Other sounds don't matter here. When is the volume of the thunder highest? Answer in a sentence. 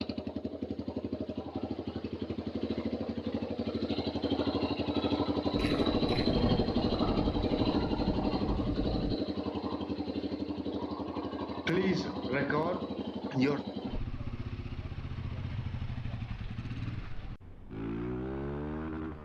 The volume of the thunder peaks at 6 seconds.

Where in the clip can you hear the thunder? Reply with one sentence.
You can hear the thunder from 5.5 to 9.2 s.